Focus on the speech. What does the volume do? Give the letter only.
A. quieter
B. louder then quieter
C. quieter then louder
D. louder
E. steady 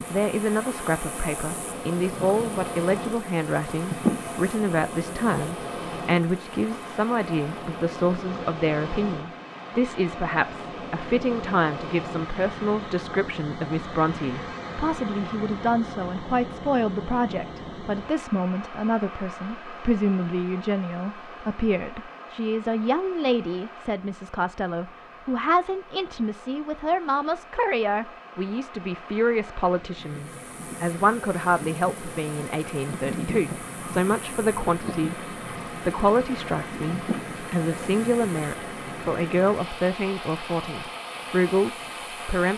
E.